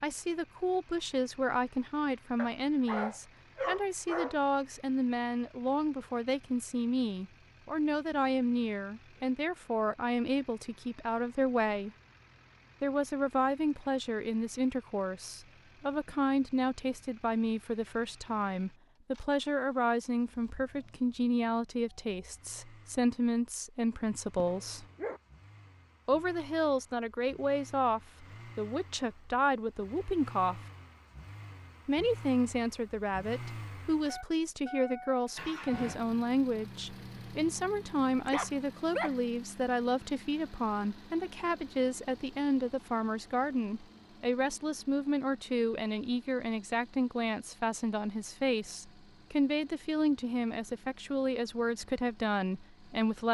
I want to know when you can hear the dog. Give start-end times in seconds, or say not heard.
2.4-4.3, 24.4-25.2, 38.0-39.1.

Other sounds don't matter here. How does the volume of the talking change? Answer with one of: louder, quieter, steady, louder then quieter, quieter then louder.
steady.